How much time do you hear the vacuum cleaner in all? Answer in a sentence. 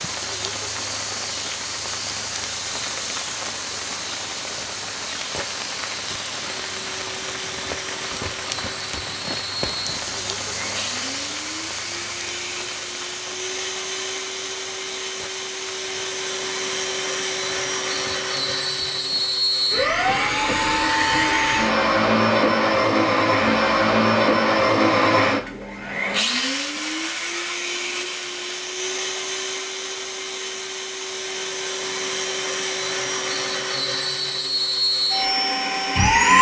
You can hear the vacuum cleaner for 30 seconds altogether.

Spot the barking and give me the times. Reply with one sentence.
The barking can't be heard in this clip.